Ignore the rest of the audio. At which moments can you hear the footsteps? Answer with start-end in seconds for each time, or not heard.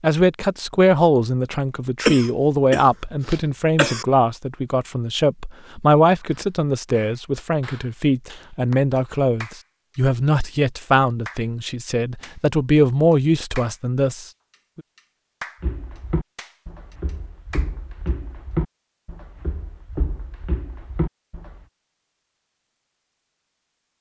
15.6-21.6.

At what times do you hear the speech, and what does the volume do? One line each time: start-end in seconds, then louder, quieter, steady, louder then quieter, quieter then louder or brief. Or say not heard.
0.0-14.8 steady.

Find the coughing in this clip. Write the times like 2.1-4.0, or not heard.
2.0-4.0.